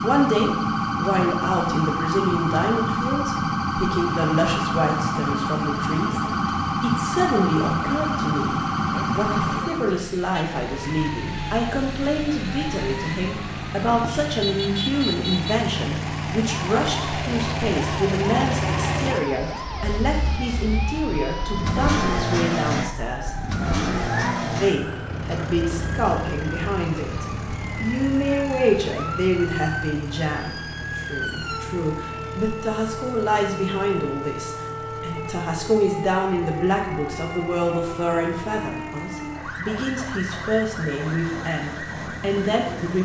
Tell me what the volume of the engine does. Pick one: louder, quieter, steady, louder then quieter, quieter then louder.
louder then quieter.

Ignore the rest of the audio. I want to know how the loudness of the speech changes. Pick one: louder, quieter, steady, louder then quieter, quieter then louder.
steady.